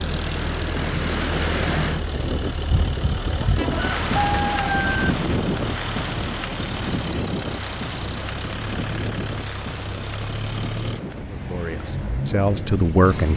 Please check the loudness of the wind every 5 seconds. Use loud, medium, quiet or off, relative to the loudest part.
loud, loud, medium.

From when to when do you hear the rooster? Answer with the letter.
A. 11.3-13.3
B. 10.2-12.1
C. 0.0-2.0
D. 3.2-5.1
D.